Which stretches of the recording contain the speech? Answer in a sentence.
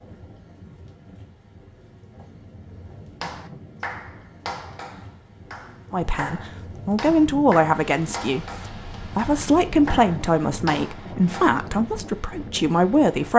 You can hear the speech from 5.9 to 13.3 s.